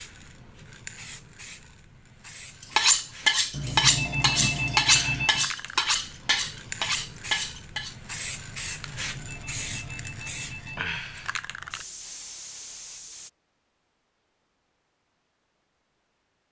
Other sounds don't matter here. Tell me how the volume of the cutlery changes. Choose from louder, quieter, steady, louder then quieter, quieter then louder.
quieter.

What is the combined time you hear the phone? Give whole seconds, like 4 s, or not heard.
4 s.